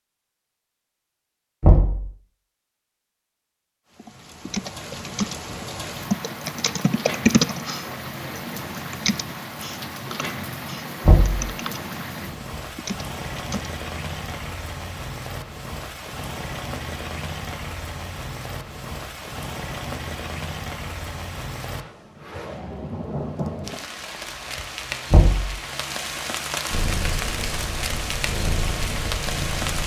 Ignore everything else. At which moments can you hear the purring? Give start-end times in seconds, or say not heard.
26.7-29.8.